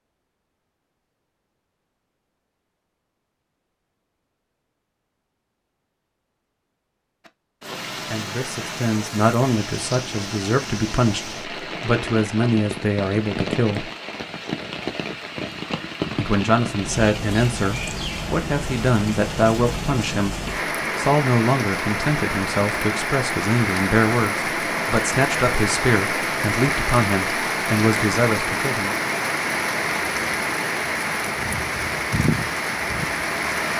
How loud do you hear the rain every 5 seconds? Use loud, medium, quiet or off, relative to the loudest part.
off, medium, medium, medium, loud, loud, loud.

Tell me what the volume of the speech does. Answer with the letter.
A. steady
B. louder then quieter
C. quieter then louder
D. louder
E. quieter
A.